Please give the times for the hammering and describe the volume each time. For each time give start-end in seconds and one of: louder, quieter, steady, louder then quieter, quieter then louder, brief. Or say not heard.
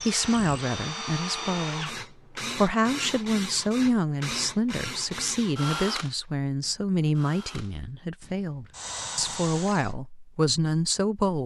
not heard.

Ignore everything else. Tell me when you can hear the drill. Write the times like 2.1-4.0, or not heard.
0.0-9.9.